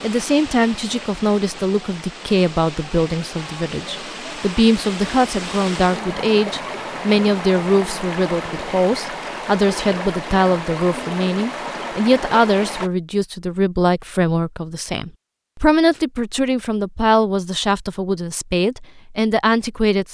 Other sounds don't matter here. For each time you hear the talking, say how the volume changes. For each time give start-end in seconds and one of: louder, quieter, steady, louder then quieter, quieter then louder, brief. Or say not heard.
0.0-20.0 steady.